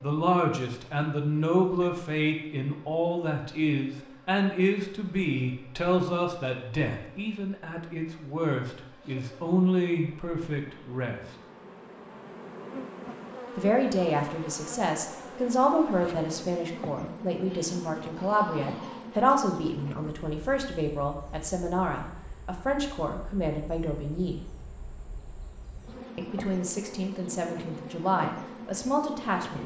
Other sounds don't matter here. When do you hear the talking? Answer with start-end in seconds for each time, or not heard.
0.0-11.2, 13.6-24.4, 26.1-29.6.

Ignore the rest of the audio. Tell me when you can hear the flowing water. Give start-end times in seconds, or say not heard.
not heard.